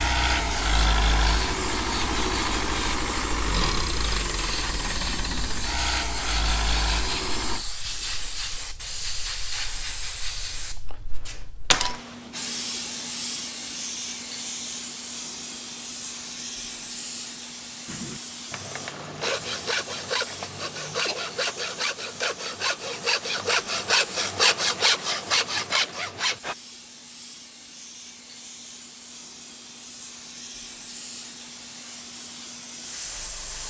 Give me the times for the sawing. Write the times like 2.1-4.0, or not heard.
17.9-26.6.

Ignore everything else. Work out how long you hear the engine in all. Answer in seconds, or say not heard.
8 s.